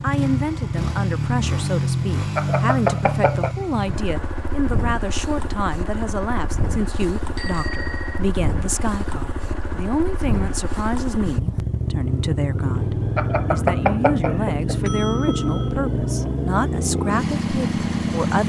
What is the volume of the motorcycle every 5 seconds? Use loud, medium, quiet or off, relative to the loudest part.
loud, medium, loud, loud.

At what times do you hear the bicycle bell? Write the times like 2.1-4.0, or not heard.
2.4-3.5, 7.3-8.2, 13.2-15.7.